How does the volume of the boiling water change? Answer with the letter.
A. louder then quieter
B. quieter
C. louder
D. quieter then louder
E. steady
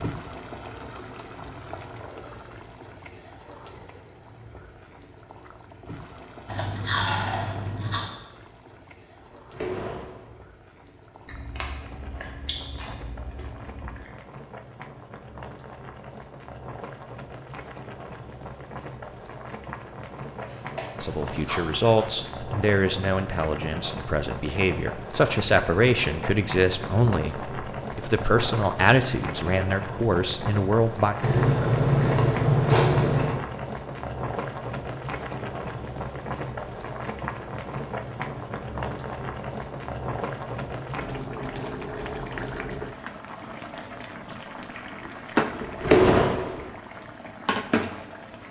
C.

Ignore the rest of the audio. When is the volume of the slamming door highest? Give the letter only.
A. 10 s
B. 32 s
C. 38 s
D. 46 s
D.